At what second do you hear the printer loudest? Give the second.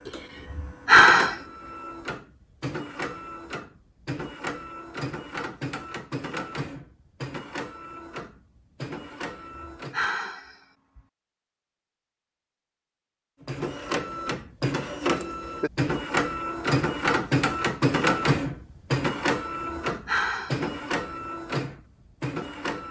18 s.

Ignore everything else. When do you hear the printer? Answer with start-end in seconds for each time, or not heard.
0.0-10.0, 13.4-22.8.